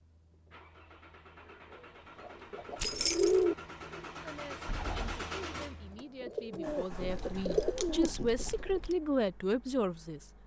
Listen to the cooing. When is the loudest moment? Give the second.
3 s.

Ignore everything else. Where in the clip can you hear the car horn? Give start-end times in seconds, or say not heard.
not heard.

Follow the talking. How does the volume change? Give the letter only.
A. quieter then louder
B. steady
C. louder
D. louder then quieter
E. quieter
C.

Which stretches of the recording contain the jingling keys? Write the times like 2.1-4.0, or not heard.
2.8-3.4, 7.0-8.9.